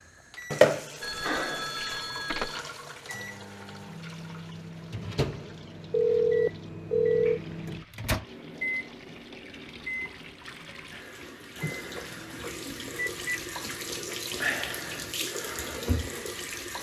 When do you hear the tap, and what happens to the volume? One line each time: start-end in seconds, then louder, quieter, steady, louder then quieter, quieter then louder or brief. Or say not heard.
0.0-16.7 quieter then louder.